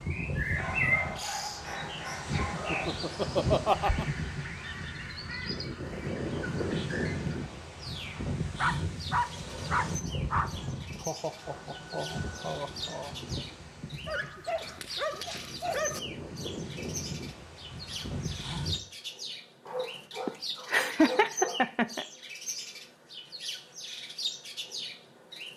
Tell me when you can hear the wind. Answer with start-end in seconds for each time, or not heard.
0.0-18.8.